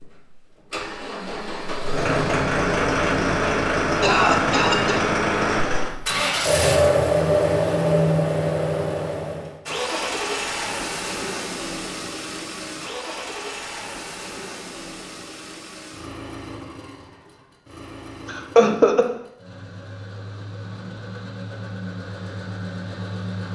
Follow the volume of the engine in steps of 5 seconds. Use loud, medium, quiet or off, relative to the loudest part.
loud, loud, medium, quiet, quiet.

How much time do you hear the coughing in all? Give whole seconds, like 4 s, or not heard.
2 s.